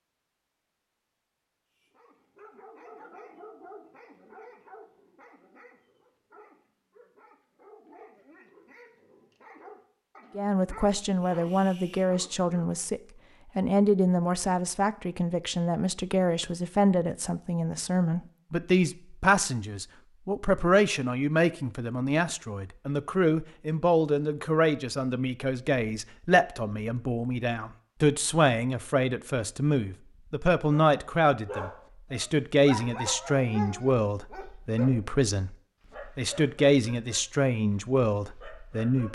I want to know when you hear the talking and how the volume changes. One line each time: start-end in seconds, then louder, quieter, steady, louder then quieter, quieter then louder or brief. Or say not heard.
10.3-39.0 steady.